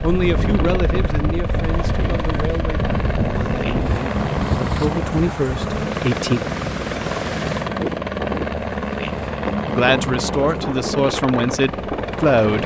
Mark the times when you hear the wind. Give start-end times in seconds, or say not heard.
0.0-12.6.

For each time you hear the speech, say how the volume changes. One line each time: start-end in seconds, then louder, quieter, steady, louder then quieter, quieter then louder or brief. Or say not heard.
0.0-6.4 quieter then louder
9.7-12.6 brief.